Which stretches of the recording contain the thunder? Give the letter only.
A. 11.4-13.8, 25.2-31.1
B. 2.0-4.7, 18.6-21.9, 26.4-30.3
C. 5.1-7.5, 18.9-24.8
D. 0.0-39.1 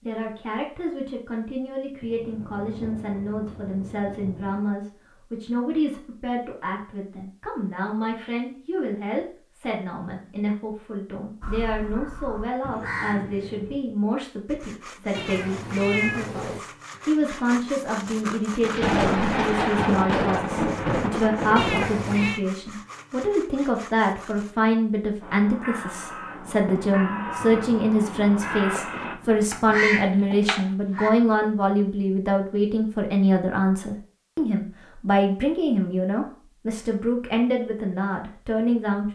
B.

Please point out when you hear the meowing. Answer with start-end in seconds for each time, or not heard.
15.1-16.6, 21.6-22.4.